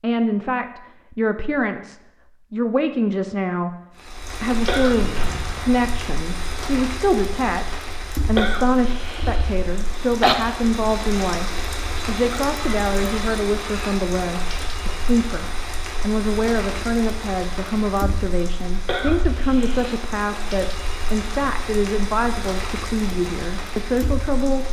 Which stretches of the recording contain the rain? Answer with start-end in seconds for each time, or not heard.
4.0-24.6.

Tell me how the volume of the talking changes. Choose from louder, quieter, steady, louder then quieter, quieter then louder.
steady.